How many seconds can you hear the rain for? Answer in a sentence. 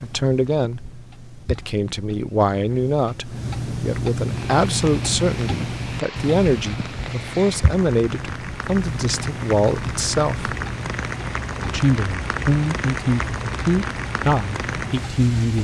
You can hear the rain for 11 seconds altogether.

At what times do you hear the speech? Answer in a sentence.
You can hear the speech from 0.0 to 10.6 s and from 11.7 to 15.5 s.